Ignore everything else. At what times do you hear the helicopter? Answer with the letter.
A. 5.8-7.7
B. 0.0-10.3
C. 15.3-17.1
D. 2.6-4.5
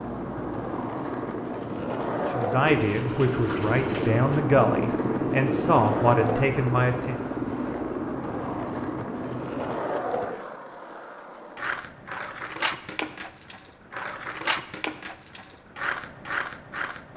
B.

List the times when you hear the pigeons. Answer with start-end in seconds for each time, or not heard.
2.6-4.5.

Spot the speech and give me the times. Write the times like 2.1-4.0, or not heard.
2.1-7.2.